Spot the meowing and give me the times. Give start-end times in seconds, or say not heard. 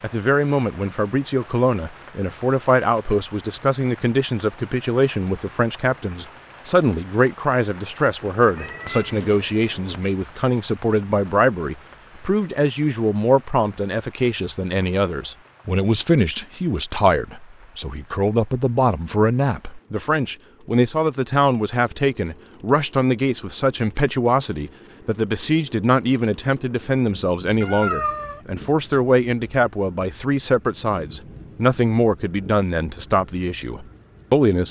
8.4-9.9, 27.6-28.4.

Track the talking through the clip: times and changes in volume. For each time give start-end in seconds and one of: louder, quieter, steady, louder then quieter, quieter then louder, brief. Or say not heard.
0.0-34.6 steady.